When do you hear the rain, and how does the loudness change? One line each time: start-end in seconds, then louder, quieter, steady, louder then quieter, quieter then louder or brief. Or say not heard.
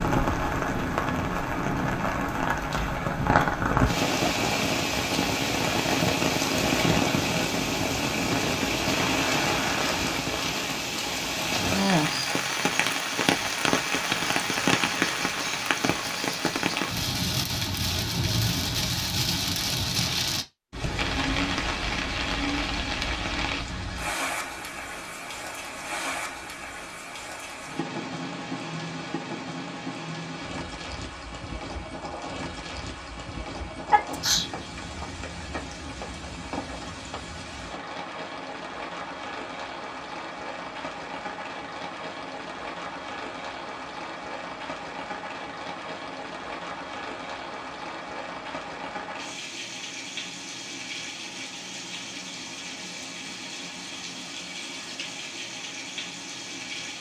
0.0-56.9 quieter.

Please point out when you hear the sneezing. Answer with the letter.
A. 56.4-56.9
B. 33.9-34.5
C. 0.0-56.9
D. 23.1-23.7
B.